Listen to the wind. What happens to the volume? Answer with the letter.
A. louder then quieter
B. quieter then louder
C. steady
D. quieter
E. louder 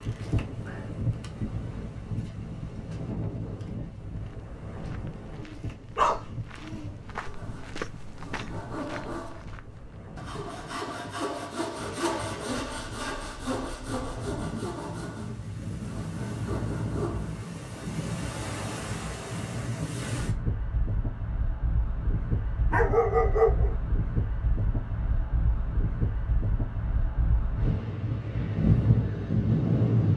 B.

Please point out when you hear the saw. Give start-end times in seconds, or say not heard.
7.1-17.6.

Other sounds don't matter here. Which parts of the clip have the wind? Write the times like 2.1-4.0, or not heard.
0.0-30.1.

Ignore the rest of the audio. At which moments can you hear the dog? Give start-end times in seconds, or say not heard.
5.4-6.9, 22.7-23.8.